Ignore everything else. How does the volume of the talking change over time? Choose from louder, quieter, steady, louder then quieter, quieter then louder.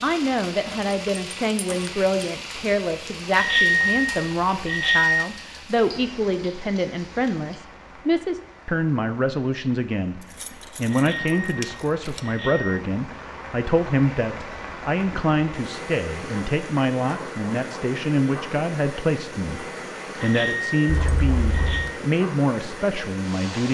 steady.